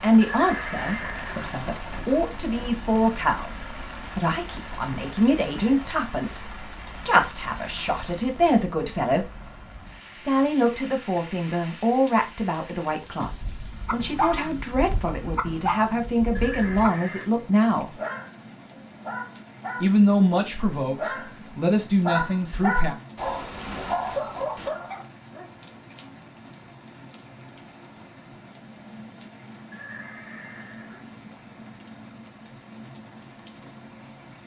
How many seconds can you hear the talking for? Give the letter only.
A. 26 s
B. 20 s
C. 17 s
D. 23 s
B.